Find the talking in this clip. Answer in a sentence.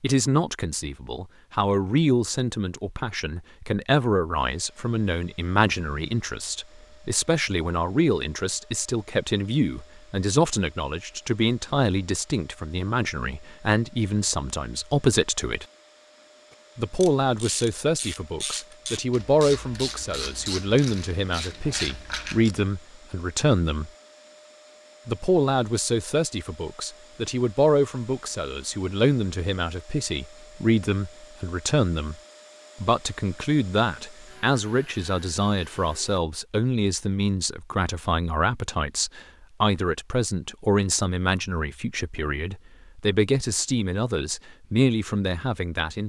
The talking can be heard from 0.0 to 15.7 s, from 16.8 to 23.9 s, from 25.1 to 32.1 s and from 32.8 to 46.0 s.